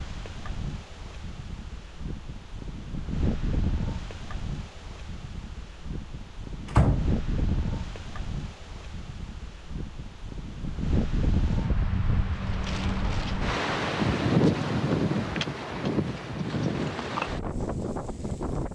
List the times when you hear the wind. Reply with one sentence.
The wind can be heard from 0.0 to 18.6 s.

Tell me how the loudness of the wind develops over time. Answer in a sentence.
The volume of the wind goes up.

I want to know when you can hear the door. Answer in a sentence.
You can hear the door from 6.7 to 7.6 s.